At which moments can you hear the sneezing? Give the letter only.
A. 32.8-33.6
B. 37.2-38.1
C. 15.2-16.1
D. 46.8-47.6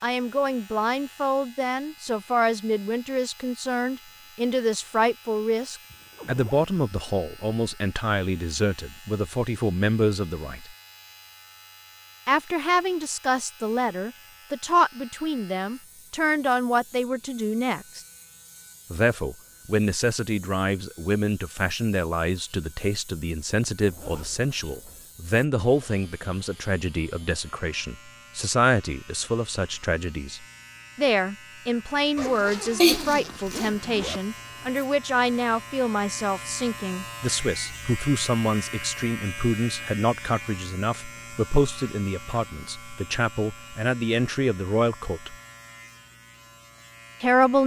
A.